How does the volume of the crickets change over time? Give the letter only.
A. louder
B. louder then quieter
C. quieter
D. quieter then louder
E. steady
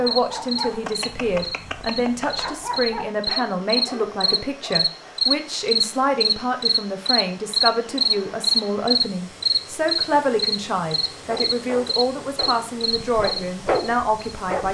B.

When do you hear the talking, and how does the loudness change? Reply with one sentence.
You can hear the talking from 0.0 to 14.6 s, at a steady volume.